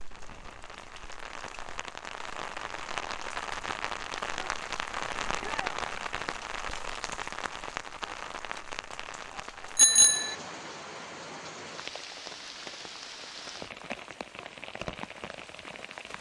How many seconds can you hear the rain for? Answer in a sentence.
The rain can be heard for 16 seconds in total.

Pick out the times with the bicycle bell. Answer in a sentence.
You can hear the bicycle bell from 9.8 to 10.3 s.